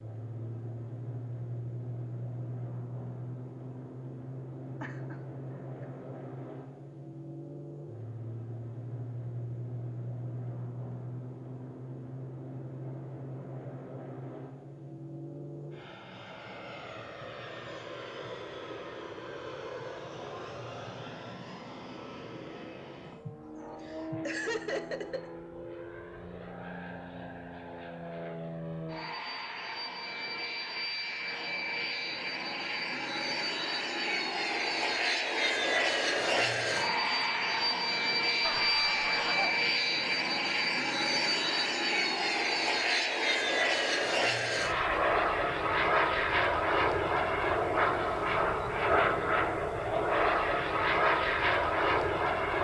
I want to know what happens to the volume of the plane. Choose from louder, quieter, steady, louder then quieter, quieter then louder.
louder.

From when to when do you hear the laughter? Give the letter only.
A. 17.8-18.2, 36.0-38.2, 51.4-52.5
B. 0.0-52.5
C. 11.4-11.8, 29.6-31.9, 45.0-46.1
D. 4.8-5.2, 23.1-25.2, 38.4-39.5
D.